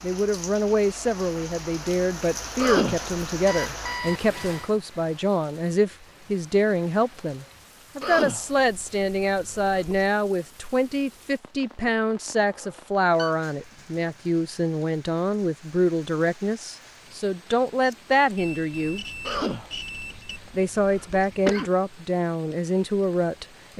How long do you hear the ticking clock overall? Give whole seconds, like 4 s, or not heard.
not heard.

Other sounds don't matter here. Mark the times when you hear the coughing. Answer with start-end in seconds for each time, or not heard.
2.5-3.1, 8.0-10.1, 19.2-21.7.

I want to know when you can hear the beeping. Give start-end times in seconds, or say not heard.
3.5-4.7, 12.5-13.3, 18.4-20.4.